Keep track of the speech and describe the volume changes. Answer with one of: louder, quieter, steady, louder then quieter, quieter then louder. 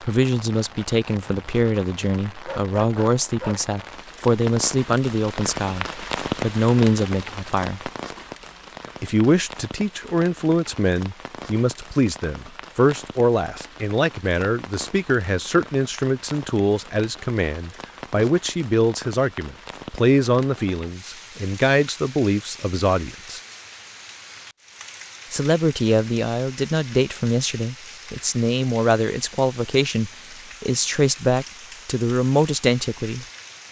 steady.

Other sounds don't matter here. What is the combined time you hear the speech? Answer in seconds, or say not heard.
30 s.